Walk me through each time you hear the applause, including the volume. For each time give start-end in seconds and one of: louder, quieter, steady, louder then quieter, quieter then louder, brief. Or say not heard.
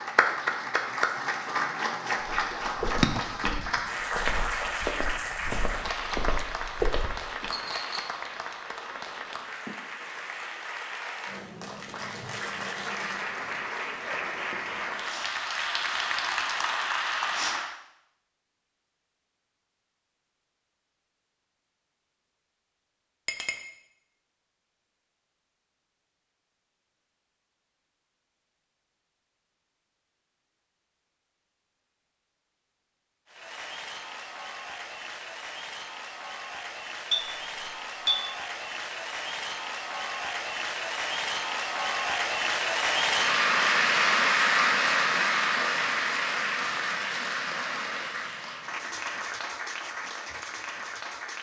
0.0-17.8 quieter then louder
33.2-51.3 louder then quieter.